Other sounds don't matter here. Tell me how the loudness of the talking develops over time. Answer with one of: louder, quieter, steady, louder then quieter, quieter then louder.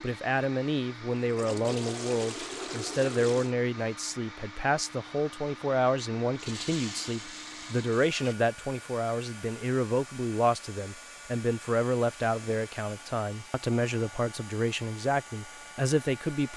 steady.